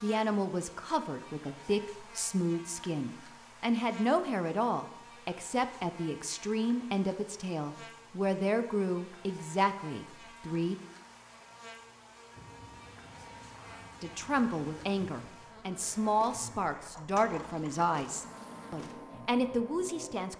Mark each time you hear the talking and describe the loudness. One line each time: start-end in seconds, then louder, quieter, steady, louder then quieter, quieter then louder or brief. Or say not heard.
0.0-10.8 steady
14.0-20.3 steady.